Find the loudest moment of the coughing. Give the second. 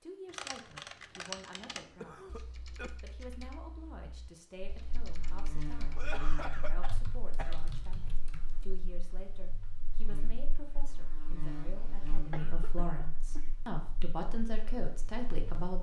6 s.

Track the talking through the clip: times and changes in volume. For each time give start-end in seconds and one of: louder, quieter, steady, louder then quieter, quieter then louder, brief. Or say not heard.
0.0-15.7 louder.